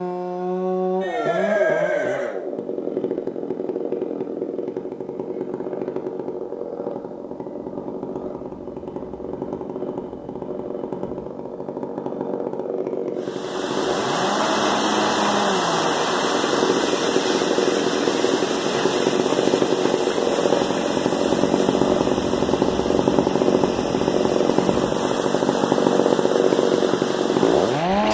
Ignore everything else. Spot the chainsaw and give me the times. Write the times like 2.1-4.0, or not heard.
0.0-28.0.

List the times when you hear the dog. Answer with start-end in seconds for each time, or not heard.
not heard.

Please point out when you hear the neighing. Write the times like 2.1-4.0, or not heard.
1.0-2.4.